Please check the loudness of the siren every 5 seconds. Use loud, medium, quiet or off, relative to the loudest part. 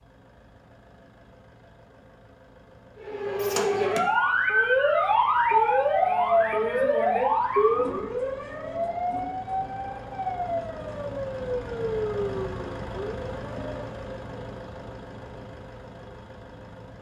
loud, loud, medium, off.